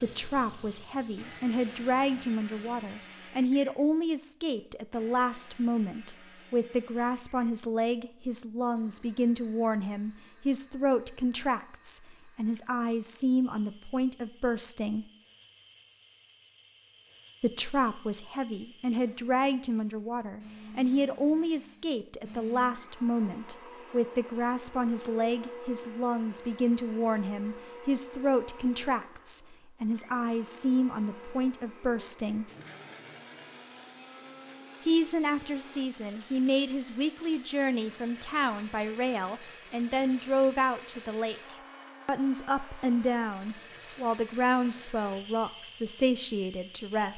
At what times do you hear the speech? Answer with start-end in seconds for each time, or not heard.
0.0-15.1, 17.4-32.5, 34.8-47.1.